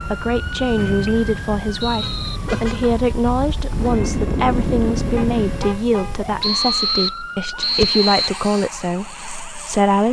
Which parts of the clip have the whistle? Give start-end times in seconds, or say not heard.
0.8-2.4, 6.4-8.3.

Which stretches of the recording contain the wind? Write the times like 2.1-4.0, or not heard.
0.0-6.5.